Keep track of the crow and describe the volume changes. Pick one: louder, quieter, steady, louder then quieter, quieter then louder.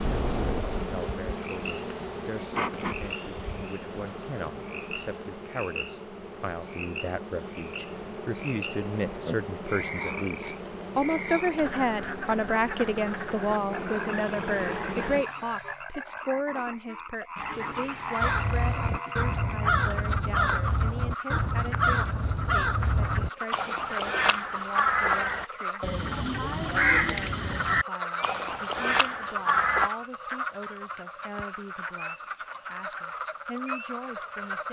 steady.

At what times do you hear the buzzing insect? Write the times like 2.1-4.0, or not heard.
0.0-15.2.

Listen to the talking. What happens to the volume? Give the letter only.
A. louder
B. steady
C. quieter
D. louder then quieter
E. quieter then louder
D.